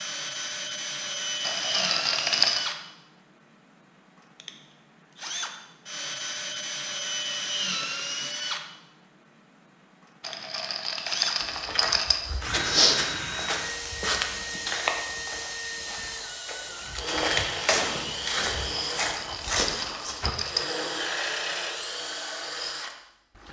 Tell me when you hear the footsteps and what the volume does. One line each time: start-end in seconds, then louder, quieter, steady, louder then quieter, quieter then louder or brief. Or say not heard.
11.4-20.4 quieter then louder.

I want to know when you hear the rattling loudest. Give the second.
2 s.